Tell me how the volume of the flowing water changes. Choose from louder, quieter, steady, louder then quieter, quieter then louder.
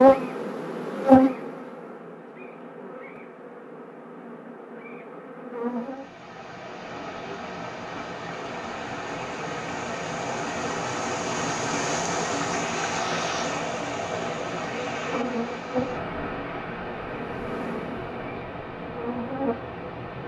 louder then quieter.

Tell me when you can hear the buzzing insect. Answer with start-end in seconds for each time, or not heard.
0.0-6.0, 14.9-20.1.